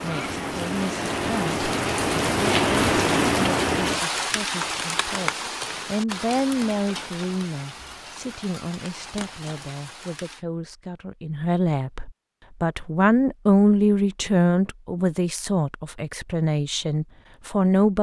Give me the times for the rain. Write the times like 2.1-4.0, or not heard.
0.0-10.4.